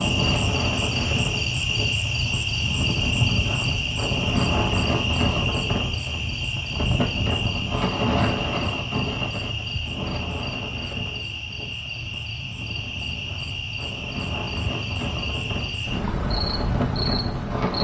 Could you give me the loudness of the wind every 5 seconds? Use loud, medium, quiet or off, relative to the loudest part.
loud, loud, medium, loud.